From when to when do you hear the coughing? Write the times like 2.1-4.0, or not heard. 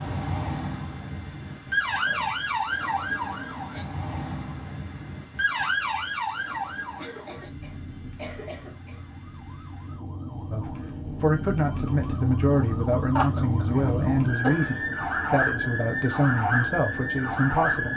1.9-2.3, 7.0-9.1, 13.2-14.8.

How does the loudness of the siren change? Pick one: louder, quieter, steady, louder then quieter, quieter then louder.
quieter then louder.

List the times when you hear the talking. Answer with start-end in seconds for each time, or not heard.
10.5-17.9.